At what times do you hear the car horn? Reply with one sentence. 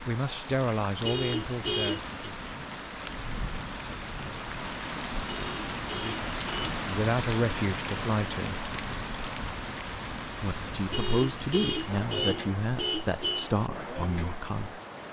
You can hear the car horn from 1.0 to 2.1 s, from 5.2 to 6.8 s and from 10.9 to 13.5 s.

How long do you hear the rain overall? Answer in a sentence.
You can hear the rain for 15 seconds altogether.